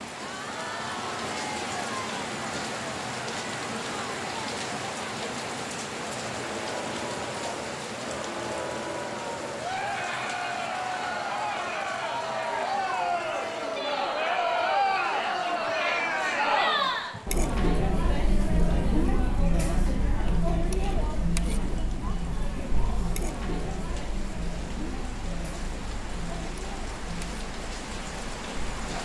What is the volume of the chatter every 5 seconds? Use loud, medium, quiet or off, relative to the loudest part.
medium, medium, loud, loud, medium, quiet.